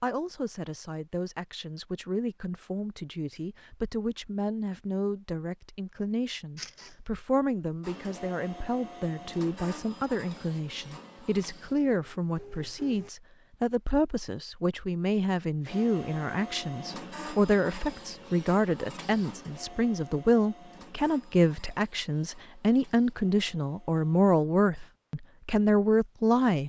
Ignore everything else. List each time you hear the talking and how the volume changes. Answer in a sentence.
You can hear the talking from 0.0 to 26.6 s, getting louder.